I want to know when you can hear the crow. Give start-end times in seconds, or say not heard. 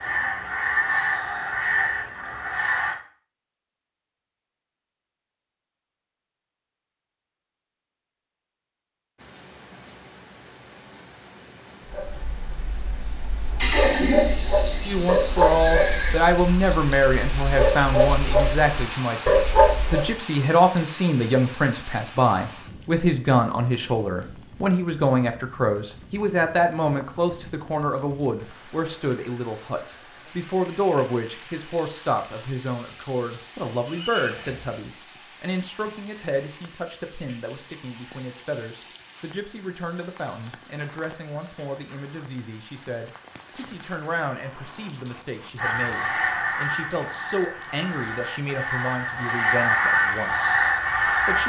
0.0-3.0, 45.5-51.4.